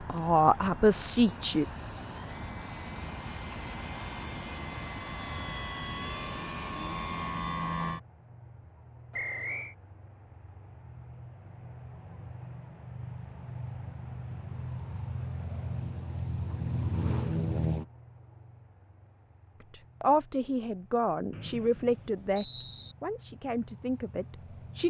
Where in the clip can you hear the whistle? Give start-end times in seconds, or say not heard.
9.1-9.8, 21.3-22.9.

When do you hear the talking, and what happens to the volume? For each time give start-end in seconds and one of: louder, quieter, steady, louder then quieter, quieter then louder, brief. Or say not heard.
0.1-1.6 brief
19.7-24.8 quieter.